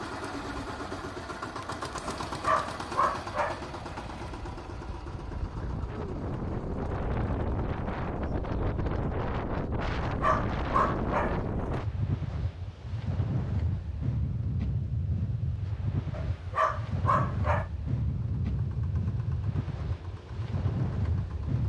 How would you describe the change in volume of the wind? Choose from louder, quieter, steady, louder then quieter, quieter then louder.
louder.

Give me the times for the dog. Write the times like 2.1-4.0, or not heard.
2.2-4.3, 10.0-11.8, 16.1-17.6.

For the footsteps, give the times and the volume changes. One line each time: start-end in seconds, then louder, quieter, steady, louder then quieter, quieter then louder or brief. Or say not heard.
not heard.